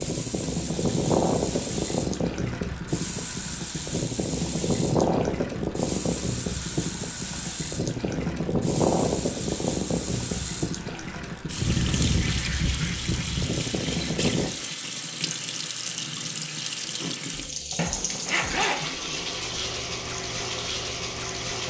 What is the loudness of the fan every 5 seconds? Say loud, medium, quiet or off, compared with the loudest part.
loud, loud, loud, off, off.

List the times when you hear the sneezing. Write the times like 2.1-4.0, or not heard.
not heard.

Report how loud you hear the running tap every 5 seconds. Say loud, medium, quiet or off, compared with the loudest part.
medium, medium, loud, loud, loud.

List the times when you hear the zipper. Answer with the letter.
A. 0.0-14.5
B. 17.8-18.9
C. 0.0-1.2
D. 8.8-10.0
B.